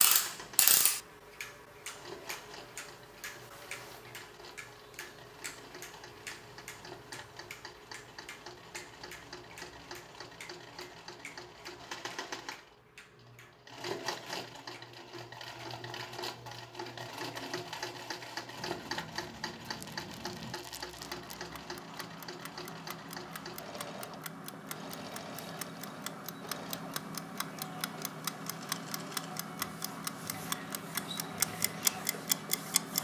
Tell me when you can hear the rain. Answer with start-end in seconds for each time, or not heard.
not heard.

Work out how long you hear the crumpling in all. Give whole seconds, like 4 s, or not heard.
2 s.